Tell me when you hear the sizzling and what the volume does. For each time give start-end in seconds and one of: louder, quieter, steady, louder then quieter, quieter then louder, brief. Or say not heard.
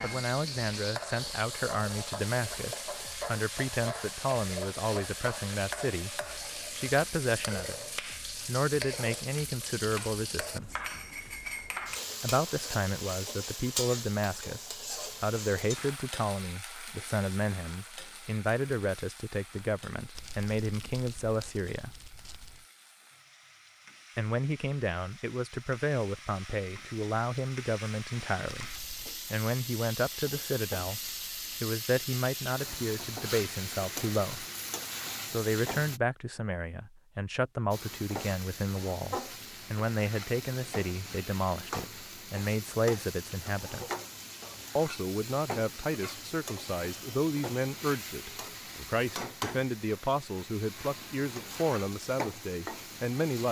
0.0-36.0 quieter then louder
37.7-53.4 steady.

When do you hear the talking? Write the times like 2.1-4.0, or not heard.
0.0-10.8, 12.2-21.9, 24.1-34.5, 35.3-44.0, 44.8-53.4.